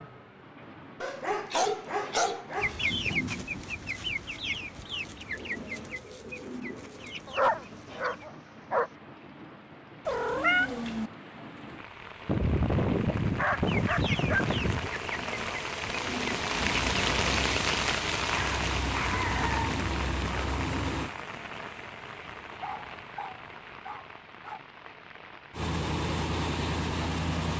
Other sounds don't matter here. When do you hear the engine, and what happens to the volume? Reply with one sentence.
The engine can be heard from 16.4 to 21.1 s, getting quieter then louder; and briefly from 25.5 to 27.5 s.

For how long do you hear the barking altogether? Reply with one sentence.
The barking can be heard for 10 seconds in total.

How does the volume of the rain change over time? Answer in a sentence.
The loudness of the rain goes up, then down.